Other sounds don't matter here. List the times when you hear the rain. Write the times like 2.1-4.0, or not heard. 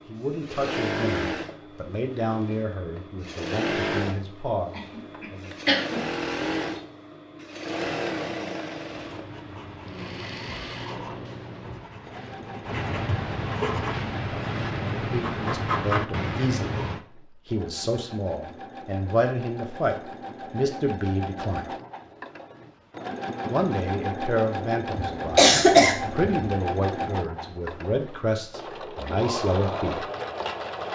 not heard.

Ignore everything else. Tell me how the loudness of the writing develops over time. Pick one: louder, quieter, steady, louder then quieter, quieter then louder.
louder.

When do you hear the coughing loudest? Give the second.
26 s.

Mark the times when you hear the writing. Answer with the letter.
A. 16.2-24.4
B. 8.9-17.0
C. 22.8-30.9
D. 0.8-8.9
B.